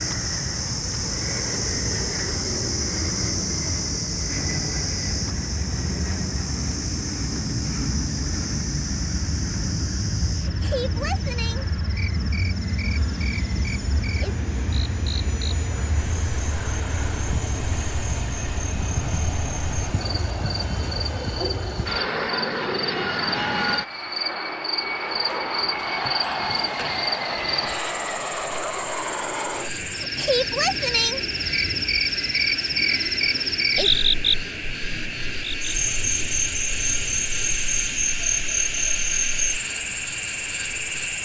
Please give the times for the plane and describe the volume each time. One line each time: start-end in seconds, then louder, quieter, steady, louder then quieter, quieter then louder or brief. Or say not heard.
0.0-41.2 steady.